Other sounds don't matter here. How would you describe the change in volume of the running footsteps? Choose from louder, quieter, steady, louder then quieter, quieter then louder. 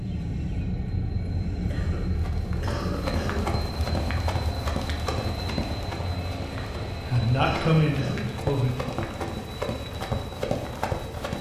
quieter then louder.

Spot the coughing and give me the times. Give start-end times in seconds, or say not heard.
1.7-3.5, 6.5-8.3.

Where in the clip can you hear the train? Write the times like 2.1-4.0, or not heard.
0.0-11.3.